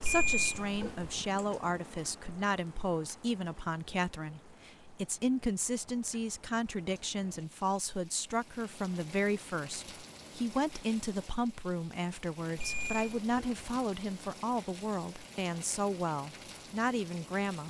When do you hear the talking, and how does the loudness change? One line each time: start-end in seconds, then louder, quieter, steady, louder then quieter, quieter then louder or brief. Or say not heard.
0.0-17.6 steady.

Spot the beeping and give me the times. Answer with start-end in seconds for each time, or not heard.
0.0-1.2, 12.6-13.8.